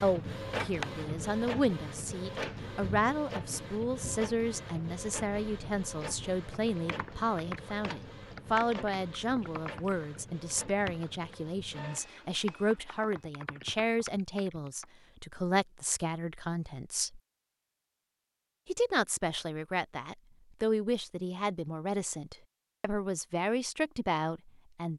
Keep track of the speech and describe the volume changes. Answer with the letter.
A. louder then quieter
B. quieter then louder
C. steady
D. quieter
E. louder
C.